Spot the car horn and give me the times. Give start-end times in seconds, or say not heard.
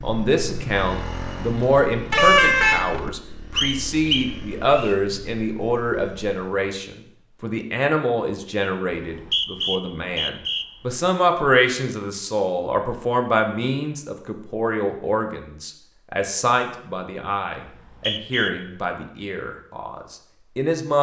2.1-2.9.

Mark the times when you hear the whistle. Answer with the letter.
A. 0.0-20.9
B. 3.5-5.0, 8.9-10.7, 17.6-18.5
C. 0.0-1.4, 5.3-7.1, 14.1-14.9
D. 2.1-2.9
B.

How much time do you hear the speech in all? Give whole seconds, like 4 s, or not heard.
21 s.